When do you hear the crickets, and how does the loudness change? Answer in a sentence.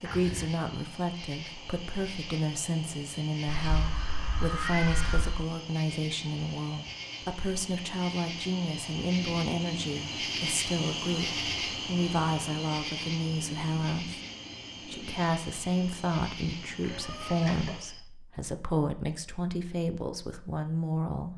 You can hear the crickets from 0.0 to 18.1 s, getting louder then quieter.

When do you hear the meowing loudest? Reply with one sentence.
The loudest moment of the meowing is at 5 seconds.